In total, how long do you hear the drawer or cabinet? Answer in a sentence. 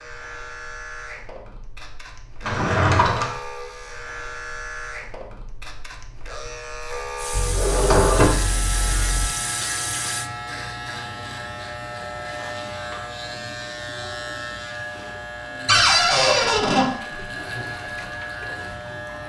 The drawer or cabinet can be heard for 4 seconds in total.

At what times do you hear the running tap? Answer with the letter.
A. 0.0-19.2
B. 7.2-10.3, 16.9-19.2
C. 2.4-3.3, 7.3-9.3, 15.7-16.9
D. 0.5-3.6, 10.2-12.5
B.